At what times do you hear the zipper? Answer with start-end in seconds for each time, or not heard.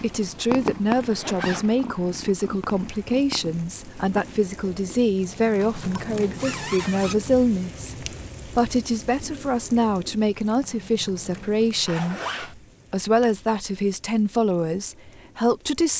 1.0-1.6, 5.5-7.2, 11.3-12.6.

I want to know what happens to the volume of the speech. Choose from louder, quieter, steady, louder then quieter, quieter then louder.
steady.